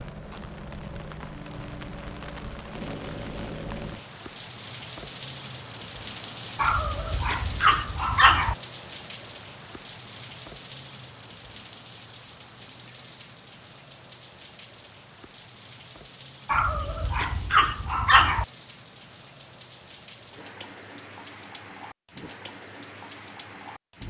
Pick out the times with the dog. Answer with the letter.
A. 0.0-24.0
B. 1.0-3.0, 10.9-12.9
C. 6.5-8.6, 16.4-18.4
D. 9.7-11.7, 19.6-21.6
C.